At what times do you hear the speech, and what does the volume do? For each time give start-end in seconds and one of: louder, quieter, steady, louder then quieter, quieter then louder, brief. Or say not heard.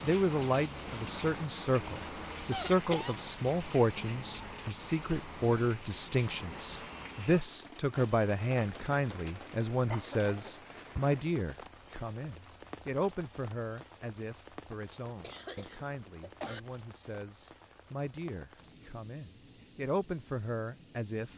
0.0-21.3 quieter.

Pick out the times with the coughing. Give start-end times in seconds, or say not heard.
2.5-3.1, 9.9-11.0, 15.2-16.6.